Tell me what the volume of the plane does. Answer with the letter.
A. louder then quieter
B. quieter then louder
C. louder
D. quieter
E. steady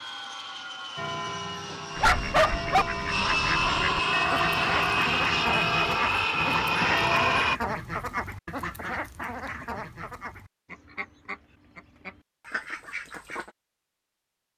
C.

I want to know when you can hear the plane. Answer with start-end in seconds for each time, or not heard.
0.0-7.6.